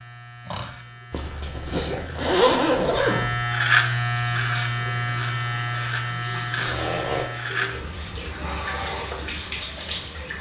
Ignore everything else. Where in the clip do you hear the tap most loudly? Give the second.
9 s.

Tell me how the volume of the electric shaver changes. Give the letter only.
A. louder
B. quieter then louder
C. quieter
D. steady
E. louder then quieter
E.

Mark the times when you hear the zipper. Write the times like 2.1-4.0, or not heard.
1.1-3.4, 6.5-7.3.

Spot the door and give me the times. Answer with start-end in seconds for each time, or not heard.
not heard.